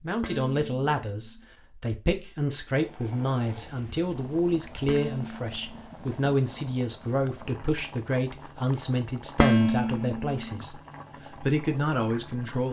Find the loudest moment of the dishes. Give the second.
10 s.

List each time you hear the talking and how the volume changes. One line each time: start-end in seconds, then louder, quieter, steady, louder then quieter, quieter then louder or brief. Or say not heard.
0.0-10.8 steady
11.4-12.6 brief.